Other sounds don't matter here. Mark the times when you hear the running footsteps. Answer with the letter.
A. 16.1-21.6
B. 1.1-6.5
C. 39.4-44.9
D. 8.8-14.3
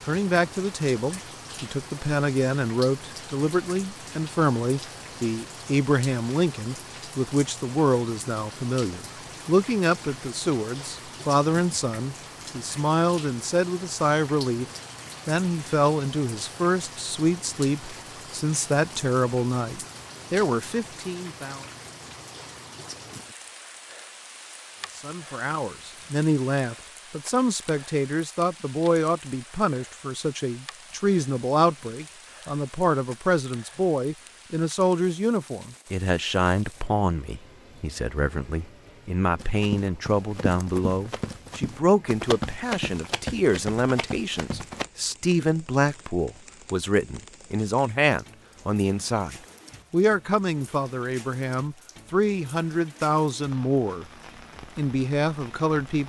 C.